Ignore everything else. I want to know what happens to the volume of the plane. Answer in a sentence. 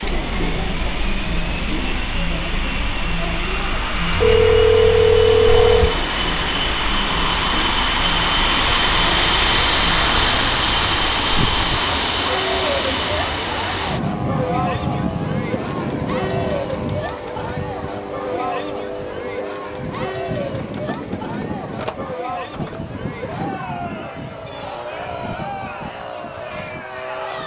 The loudness of the plane goes up, then down.